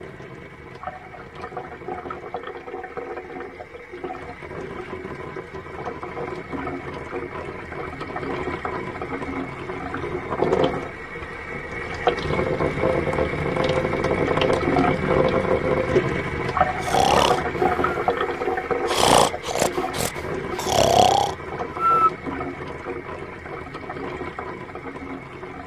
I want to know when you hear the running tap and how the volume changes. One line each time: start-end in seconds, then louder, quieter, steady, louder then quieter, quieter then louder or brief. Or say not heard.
0.0-25.6 louder then quieter.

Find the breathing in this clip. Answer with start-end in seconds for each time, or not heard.
16.8-22.1.